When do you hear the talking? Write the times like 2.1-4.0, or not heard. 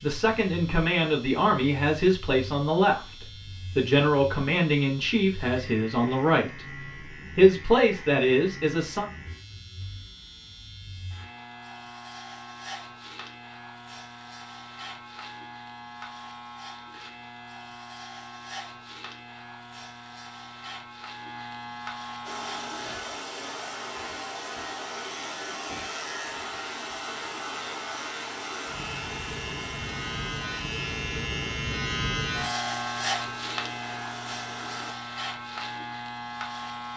0.0-9.1.